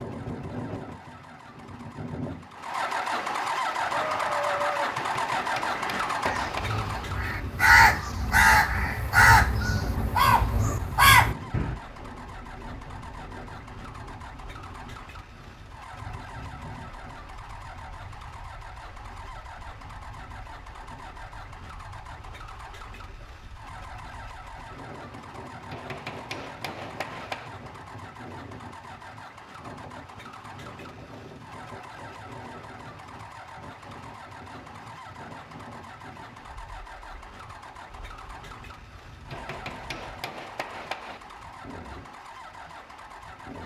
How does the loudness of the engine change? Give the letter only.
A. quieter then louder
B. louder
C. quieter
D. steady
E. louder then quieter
C.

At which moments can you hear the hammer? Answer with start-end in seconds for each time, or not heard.
5.0-6.8, 25.7-27.5, 39.3-41.2.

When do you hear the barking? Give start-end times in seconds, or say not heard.
not heard.